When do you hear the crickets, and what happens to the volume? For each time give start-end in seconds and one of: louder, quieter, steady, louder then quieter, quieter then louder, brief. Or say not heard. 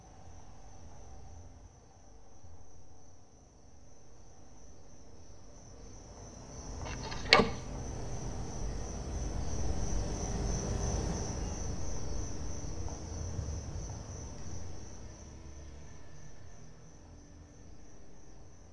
0.0-18.6 louder then quieter.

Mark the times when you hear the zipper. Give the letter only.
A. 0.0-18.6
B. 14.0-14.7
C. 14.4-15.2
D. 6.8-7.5
D.